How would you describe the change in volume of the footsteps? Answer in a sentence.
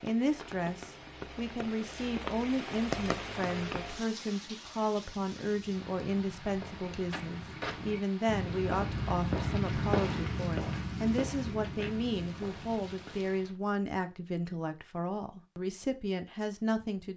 The volume of the footsteps goes up, then down.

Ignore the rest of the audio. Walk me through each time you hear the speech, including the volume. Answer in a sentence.
The speech can be heard from 0.0 to 17.1 s, at a steady volume.